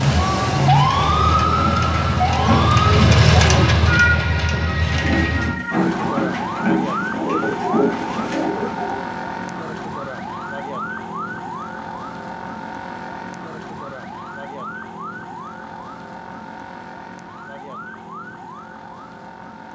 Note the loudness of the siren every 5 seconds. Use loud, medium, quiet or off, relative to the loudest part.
loud, medium, medium, quiet.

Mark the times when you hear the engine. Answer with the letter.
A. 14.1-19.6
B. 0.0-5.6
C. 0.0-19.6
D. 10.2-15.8
B.